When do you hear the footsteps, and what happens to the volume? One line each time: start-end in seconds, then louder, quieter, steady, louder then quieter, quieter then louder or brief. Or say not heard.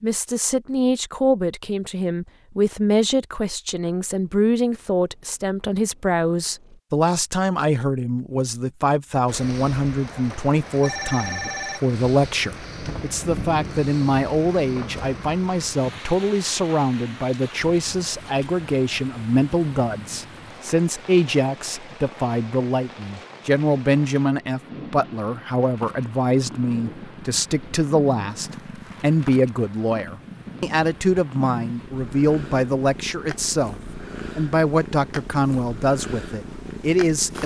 not heard.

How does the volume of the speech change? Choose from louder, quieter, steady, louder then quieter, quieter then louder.
steady.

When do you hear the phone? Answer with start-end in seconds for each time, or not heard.
10.8-11.8.